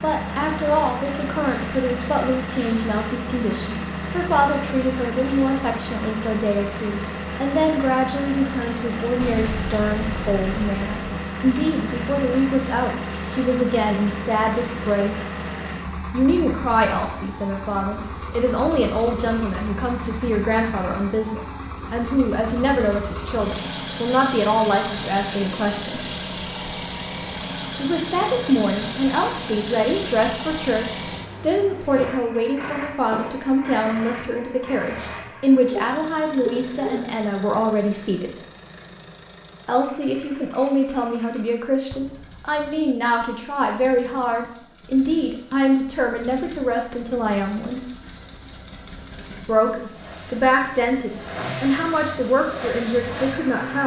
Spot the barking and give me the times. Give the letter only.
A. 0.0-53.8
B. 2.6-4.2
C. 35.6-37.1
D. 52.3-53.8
C.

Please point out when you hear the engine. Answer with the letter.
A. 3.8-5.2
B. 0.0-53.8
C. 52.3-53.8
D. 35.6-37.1
B.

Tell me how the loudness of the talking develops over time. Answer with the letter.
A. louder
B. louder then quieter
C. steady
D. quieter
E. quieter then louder
C.